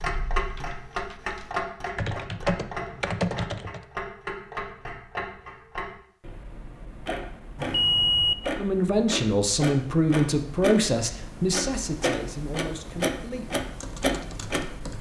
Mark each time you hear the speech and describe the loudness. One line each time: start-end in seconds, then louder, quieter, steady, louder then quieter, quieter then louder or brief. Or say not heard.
8.6-13.5 quieter.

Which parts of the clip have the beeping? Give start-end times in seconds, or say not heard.
7.5-8.3.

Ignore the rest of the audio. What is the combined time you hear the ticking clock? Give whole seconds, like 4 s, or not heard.
15 s.